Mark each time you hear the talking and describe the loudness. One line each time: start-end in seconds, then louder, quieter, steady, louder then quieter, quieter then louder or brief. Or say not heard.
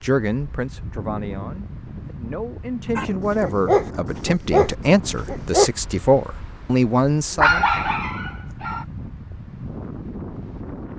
0.0-7.7 louder.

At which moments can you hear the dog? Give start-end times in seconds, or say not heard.
3.0-5.7, 7.3-8.8.